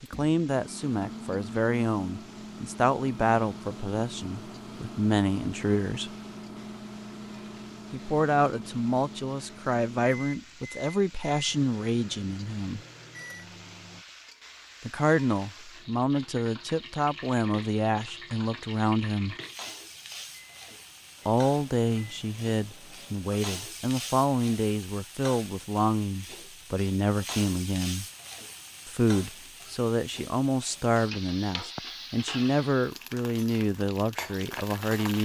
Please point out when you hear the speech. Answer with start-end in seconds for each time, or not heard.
0.0-6.1, 7.9-12.8, 14.8-19.4, 21.2-28.1, 28.9-35.2.